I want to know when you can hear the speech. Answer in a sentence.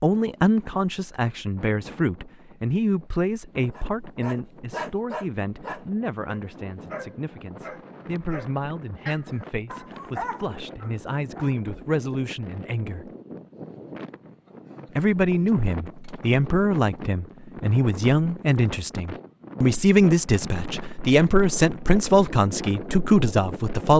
You can hear the speech from 0.0 to 13.1 s and from 14.9 to 23.9 s.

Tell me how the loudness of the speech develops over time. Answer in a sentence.
The volume of the speech goes down, then up.